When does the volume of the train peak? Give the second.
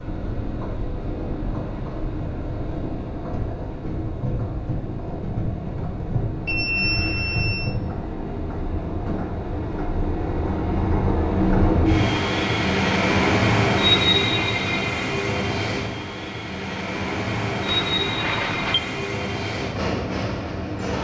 14 s.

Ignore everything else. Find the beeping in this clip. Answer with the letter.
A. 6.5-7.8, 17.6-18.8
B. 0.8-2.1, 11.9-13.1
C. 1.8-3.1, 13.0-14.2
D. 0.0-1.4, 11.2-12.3
A.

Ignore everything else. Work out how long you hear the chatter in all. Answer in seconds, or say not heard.
not heard.